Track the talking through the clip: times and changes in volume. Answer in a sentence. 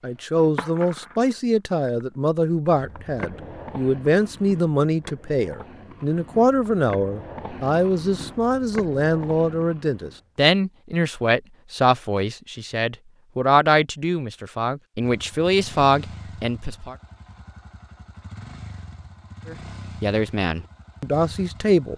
You can hear the talking from 0.0 to 16.9 s, at a steady volume; and briefly from 19.4 to 21.9 s.